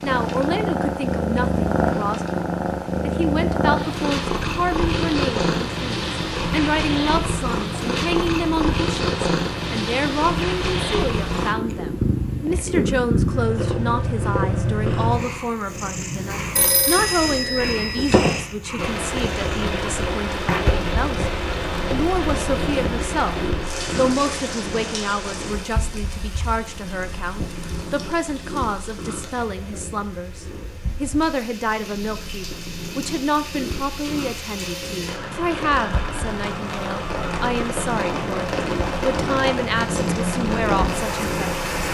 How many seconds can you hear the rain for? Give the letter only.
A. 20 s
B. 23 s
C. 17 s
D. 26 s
B.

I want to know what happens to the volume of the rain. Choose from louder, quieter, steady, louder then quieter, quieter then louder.
quieter then louder.